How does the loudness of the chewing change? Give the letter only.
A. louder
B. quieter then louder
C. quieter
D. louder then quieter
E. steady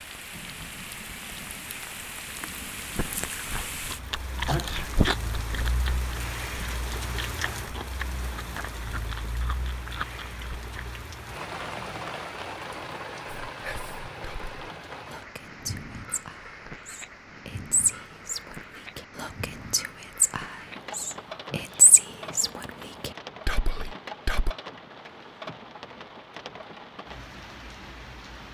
D.